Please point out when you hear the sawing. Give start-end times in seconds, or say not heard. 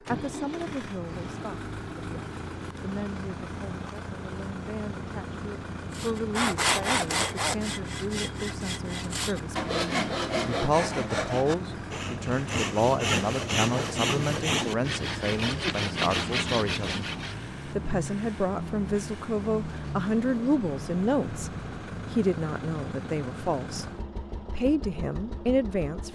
5.9-17.4.